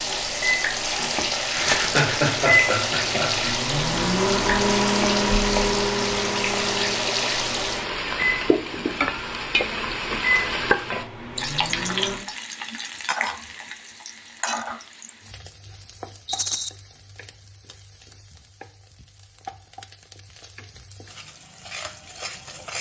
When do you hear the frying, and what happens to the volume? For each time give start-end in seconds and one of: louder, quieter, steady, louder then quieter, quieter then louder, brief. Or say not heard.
0.0-22.7 quieter.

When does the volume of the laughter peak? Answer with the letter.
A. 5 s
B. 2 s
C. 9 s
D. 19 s
B.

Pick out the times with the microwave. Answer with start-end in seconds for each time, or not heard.
0.0-12.2.